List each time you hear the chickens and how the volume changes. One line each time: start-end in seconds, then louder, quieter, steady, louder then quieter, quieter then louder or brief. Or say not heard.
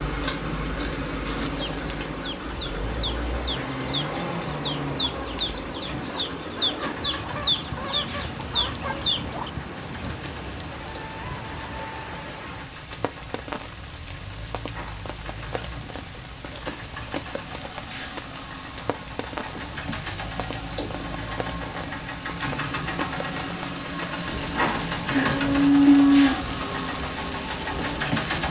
1.2-9.5 louder.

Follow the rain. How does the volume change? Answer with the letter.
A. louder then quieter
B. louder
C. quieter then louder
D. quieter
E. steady
E.